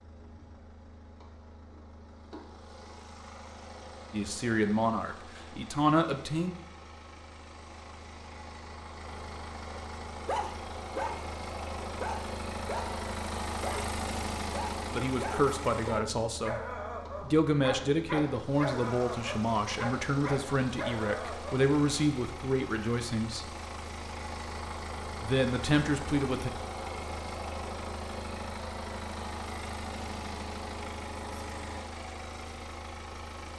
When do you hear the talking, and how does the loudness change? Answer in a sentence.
You can hear the talking briefly from 4.1 to 6.5 s; briefly from 14.9 to 16.6 s; from 17.2 to 23.4 s, at a steady volume; and briefly from 25.2 to 26.5 s.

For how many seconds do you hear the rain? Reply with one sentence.
The rain can't be heard in this clip.